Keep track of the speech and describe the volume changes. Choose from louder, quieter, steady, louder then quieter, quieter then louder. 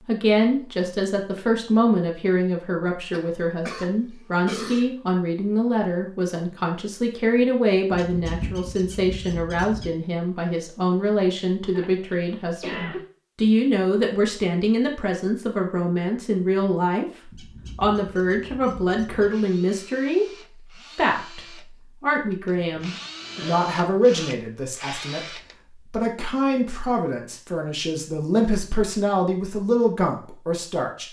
steady.